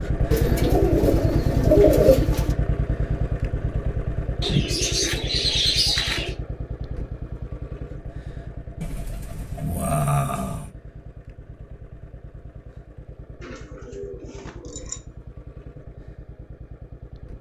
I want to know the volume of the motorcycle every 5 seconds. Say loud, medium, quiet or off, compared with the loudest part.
loud, medium, quiet, quiet.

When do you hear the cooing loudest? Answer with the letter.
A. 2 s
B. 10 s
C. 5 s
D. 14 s
A.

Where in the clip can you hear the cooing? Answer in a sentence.
You can hear the cooing from 0.3 to 2.5 s, from 4.4 to 6.3 s, from 8.8 to 10.7 s and from 13.4 to 15.0 s.